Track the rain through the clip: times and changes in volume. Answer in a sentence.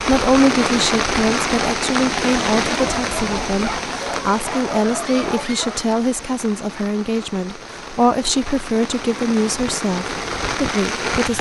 You can hear the rain from 0.0 to 11.3 s, getting quieter then louder.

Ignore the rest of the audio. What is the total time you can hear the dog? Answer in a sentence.
The dog can be heard for 3 seconds in total.